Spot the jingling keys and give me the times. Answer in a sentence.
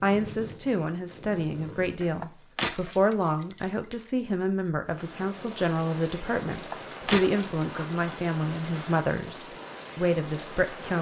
You can hear the jingling keys from 2.0 to 4.0 s and from 6.5 to 8.1 s.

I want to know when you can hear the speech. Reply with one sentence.
The speech can be heard from 0.0 to 10.9 s.